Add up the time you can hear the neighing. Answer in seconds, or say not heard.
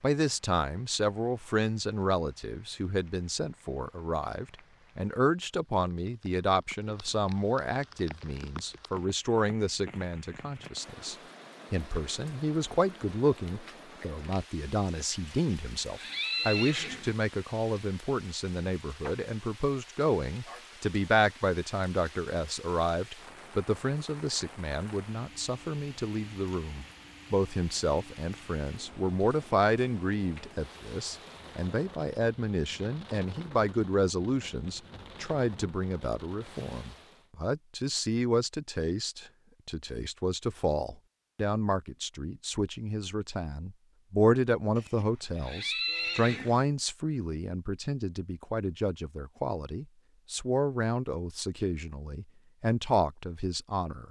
4 s.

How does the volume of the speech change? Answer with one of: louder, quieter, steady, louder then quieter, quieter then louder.
steady.